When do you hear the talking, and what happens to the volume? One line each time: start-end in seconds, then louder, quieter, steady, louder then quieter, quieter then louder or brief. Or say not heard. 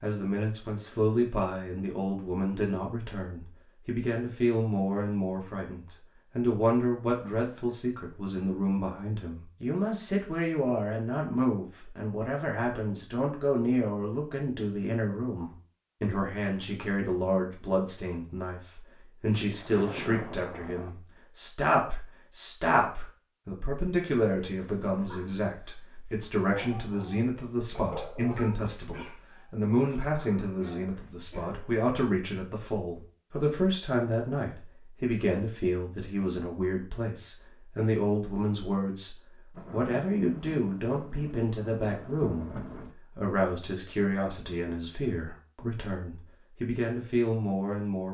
0.0-48.0 steady.